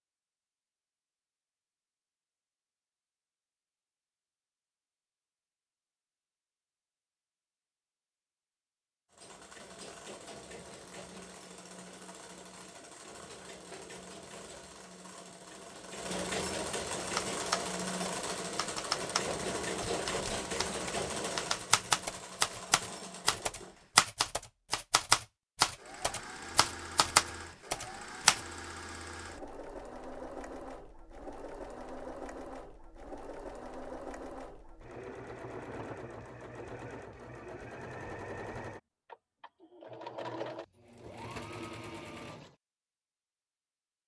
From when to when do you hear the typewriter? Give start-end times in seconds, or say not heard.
17.1-28.4.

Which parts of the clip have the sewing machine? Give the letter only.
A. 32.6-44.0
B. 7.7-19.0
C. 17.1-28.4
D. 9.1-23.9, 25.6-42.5
D.